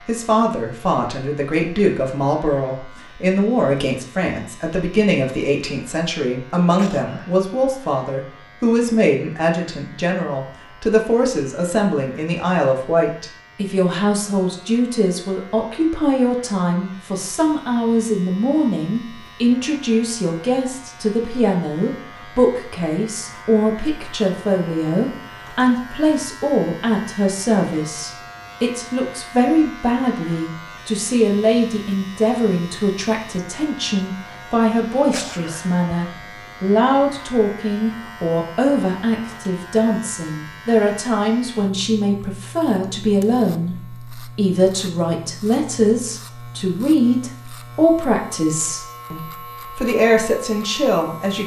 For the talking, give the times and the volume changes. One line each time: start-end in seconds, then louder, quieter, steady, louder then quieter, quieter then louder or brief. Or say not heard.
0.1-51.4 steady.